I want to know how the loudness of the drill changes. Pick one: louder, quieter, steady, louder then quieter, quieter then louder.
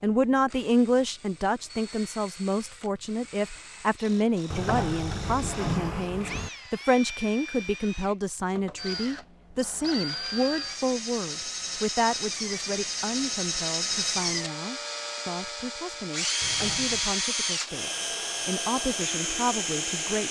louder.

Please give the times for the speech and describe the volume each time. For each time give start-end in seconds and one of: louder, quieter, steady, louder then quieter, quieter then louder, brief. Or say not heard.
0.0-20.2 quieter.